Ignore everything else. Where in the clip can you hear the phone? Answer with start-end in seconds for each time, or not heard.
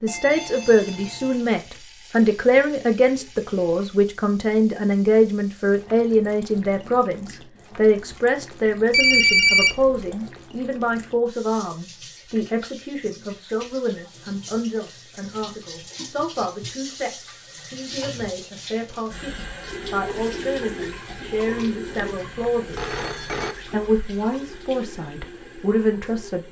0.1-1.4, 8.9-10.2, 21.9-23.6.